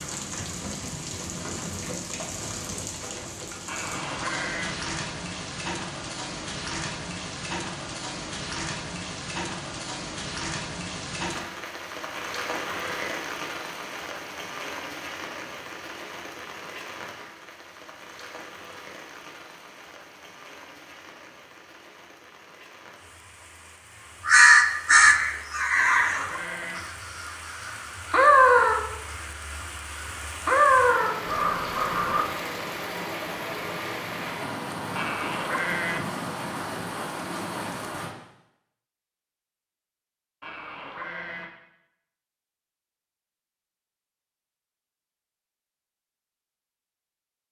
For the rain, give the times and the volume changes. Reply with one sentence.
The rain can be heard from 0.0 to 38.1 s, getting quieter then louder.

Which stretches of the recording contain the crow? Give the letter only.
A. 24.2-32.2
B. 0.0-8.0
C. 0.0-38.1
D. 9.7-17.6
A.